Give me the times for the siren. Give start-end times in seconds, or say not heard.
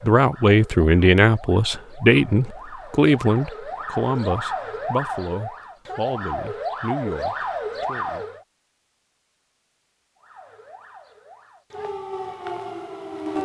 0.0-8.4, 10.2-13.4.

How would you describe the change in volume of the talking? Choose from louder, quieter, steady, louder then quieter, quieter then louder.
quieter.